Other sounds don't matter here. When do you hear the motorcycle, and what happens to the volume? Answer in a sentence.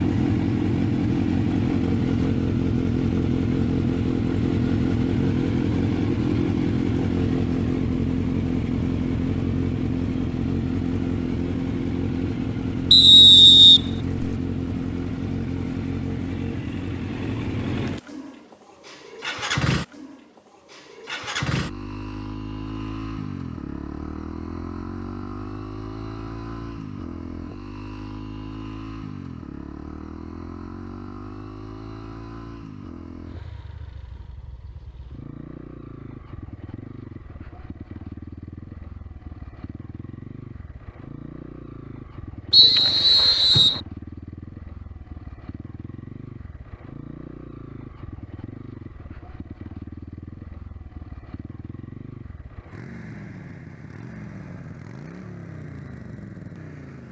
The motorcycle can be heard from 0.0 to 57.0 s, getting quieter.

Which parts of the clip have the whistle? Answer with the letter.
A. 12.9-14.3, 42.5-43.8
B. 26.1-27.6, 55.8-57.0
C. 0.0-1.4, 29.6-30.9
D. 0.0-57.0
A.